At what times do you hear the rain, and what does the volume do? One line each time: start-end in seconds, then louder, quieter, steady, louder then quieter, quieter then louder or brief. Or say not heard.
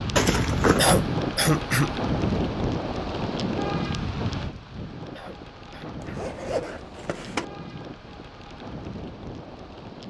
0.0-10.0 quieter.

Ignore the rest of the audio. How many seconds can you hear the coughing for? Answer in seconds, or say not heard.
2 s.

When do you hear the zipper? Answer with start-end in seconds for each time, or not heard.
0.1-0.9, 6.0-7.5.